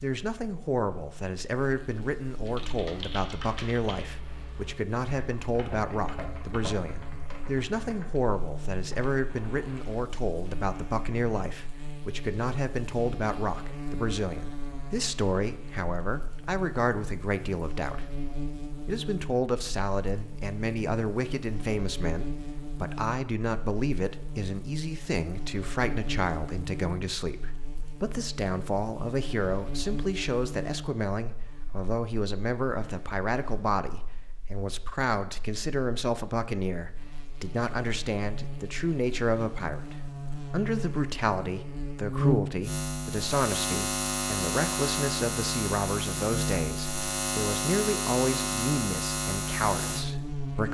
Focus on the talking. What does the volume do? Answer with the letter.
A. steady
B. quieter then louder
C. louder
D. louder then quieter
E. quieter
A.